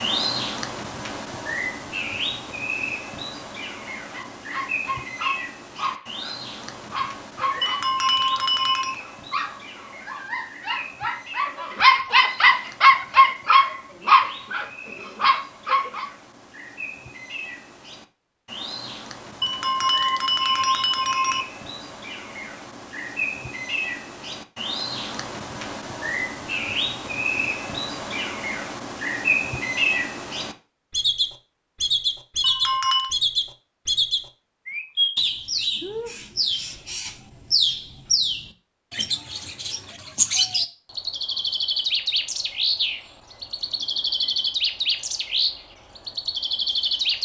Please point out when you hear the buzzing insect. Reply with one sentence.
You can't hear the buzzing insect here.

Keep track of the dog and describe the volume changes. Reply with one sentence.
The volume of the dog goes up.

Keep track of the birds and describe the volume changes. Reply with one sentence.
The volume of the birds goes down, then up.